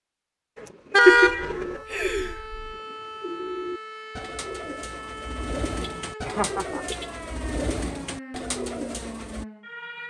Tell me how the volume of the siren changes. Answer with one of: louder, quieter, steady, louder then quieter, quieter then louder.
steady.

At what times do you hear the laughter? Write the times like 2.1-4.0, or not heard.
1.1-2.8, 6.2-7.0.